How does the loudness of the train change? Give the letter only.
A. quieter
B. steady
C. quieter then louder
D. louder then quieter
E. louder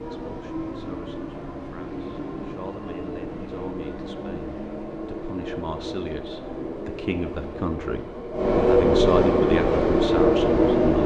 E.